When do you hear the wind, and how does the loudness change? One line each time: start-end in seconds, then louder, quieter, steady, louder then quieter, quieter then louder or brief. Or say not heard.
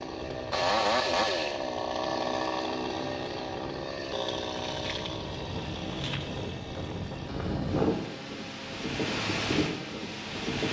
0.0-10.6 louder.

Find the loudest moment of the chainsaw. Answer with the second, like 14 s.
1 s.